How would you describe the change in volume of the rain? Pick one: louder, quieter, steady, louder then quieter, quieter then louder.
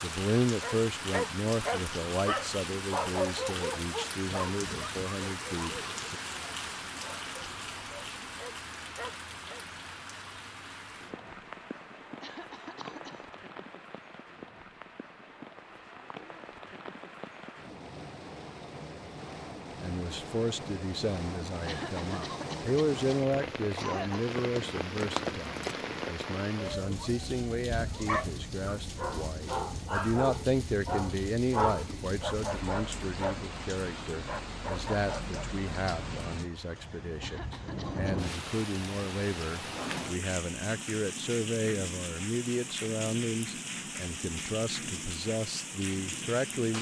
quieter then louder.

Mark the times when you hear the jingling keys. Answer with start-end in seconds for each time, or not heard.
24.4-26.1.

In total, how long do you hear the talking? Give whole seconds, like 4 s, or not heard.
33 s.